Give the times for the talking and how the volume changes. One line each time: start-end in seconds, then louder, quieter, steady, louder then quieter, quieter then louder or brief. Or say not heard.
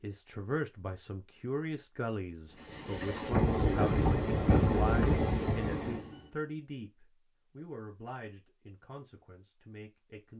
0.0-10.3 quieter.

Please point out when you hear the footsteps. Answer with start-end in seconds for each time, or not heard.
not heard.